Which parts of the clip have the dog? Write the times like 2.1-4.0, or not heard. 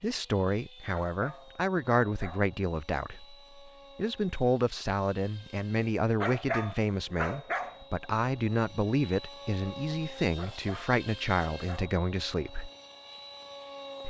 1.1-2.5, 6.2-7.8, 10.3-12.0.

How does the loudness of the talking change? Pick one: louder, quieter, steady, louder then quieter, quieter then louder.
steady.